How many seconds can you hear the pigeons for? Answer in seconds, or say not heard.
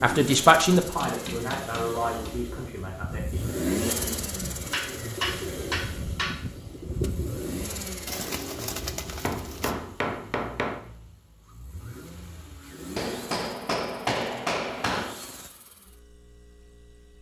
7 s.